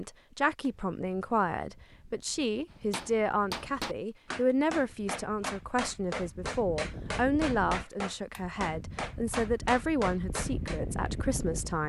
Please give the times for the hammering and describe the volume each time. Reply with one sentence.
You can hear the hammering from 2.7 to 10.8 s, at a steady volume.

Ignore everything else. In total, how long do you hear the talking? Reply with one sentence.
The talking can be heard for 12 seconds in total.